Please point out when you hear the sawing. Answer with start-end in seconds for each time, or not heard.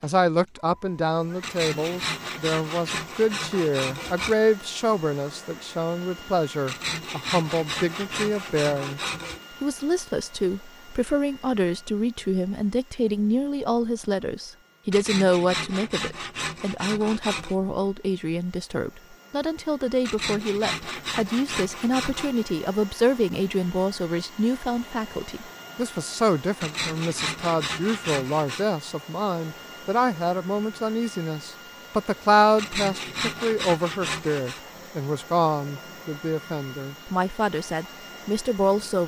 1.4-4.3, 6.7-9.4, 14.9-17.6, 20.0-22.4, 26.6-28.6, 32.5-34.6.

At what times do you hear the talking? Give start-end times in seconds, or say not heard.
0.0-9.0, 9.6-39.0.